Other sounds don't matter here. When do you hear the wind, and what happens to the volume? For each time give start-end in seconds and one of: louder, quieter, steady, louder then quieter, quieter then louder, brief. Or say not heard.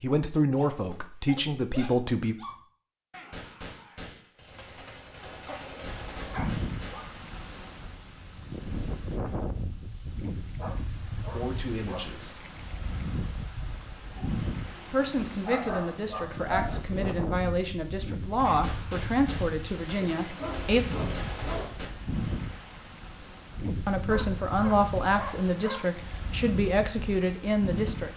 5.8-28.1 steady.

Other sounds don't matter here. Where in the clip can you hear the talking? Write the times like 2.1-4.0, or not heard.
0.0-2.4, 11.3-12.4, 14.9-20.8, 23.9-28.1.